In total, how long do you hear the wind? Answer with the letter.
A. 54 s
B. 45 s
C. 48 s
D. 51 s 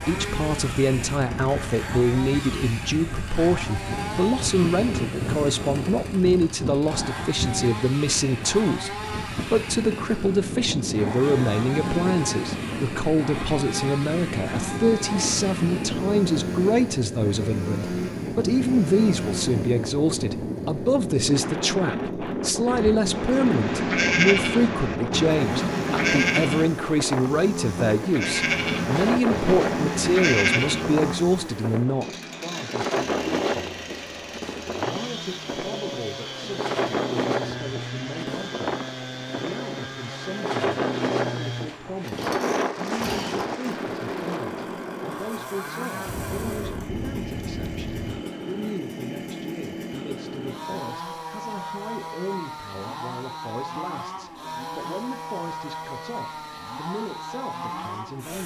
C.